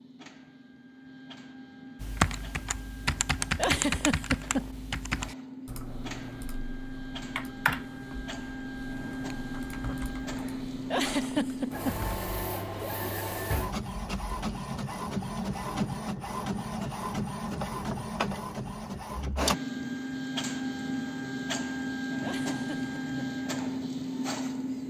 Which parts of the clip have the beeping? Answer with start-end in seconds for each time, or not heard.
not heard.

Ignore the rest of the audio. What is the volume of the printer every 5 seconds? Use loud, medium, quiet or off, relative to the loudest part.
quiet, medium, loud, loud, loud.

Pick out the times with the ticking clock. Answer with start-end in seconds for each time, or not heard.
not heard.